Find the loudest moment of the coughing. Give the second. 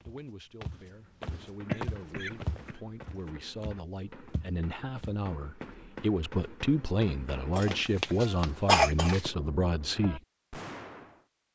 9 s.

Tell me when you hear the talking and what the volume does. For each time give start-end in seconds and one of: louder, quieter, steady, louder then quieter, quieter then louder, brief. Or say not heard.
0.0-10.2 louder.